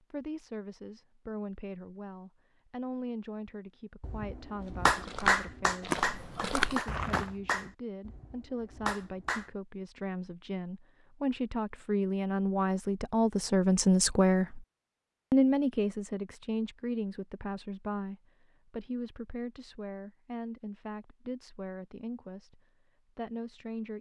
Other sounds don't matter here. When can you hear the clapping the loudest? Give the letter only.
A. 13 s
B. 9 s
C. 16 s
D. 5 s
D.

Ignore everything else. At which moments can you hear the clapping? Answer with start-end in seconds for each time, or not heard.
4.0-9.5.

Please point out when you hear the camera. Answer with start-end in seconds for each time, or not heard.
not heard.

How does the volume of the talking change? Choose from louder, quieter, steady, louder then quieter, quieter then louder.
louder then quieter.